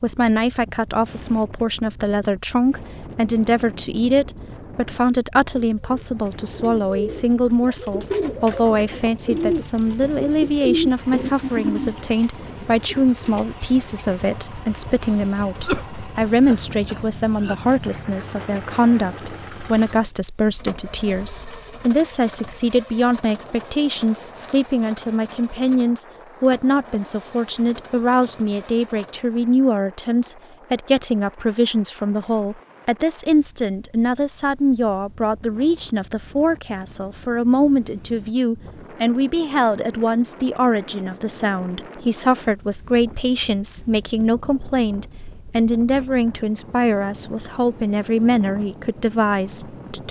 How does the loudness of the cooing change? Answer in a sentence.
The volume of the cooing goes up, then down.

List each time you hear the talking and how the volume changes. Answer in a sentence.
The talking can be heard from 0.0 to 50.0 s, at a steady volume.